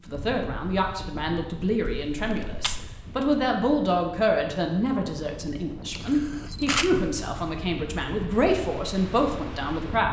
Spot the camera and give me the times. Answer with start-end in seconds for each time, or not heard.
1.9-2.9, 6.0-6.9.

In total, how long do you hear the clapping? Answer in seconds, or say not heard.
not heard.